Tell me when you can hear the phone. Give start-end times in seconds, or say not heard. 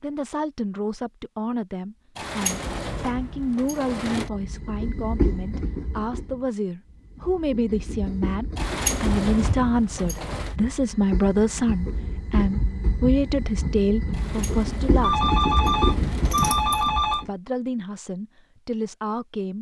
15.0-17.2.